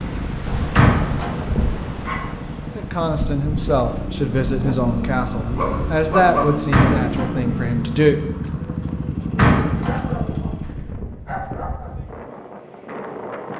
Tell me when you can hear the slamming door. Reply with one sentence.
The slamming door can be heard from 0.8 to 1.4 s, from 6.7 to 7.3 s and from 9.3 to 10.0 s.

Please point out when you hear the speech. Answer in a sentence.
The speech can be heard from 2.8 to 8.2 s.